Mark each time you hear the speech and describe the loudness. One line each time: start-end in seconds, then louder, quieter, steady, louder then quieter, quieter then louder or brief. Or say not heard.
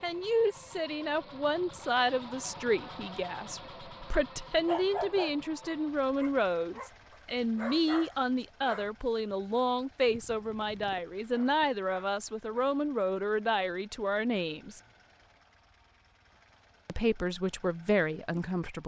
0.0-14.8 steady
16.9-18.8 brief.